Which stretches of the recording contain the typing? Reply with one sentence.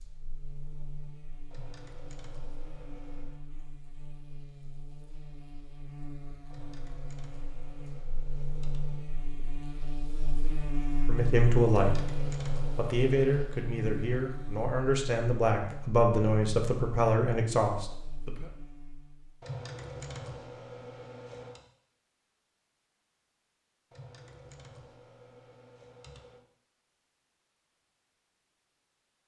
The typing can be heard from 1.5 to 3.4 s, from 6.5 to 9.1 s, from 11.7 to 13.4 s, from 19.4 to 21.6 s and from 23.9 to 26.4 s.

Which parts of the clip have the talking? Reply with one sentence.
The talking can be heard from 10.9 to 18.4 s.